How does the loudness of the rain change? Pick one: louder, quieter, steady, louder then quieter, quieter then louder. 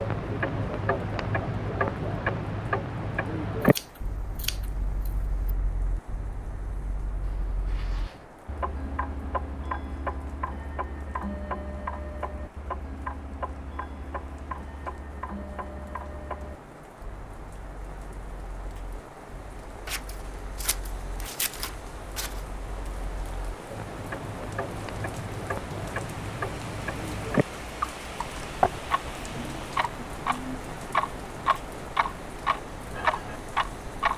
louder.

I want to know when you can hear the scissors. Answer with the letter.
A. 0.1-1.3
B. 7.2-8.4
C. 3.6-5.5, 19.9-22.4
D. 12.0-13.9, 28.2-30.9
C.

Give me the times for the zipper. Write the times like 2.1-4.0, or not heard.
7.2-8.4.